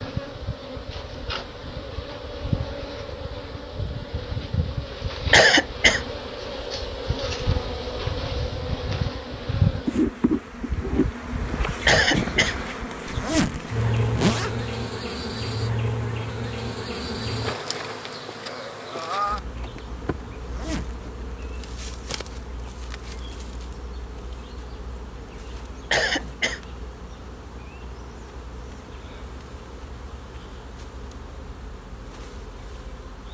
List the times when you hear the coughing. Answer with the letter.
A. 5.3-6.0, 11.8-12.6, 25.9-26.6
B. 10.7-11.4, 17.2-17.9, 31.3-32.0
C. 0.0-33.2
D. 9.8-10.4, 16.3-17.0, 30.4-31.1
A.